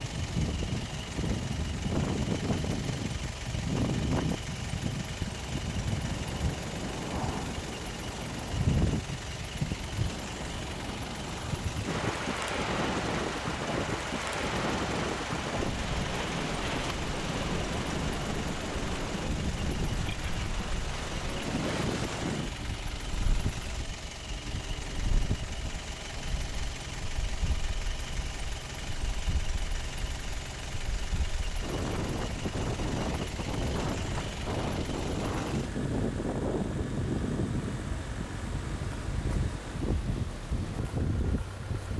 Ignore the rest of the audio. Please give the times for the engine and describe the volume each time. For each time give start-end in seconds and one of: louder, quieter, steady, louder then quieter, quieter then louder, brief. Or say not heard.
0.0-41.9 steady.